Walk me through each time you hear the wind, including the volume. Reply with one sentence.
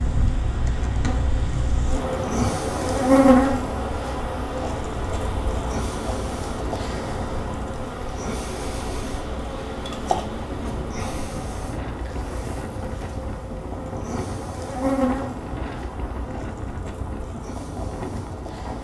The wind can be heard from 0.0 to 18.7 s, at a steady volume.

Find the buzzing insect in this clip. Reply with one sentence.
You can hear the buzzing insect from 0.0 to 18.7 s.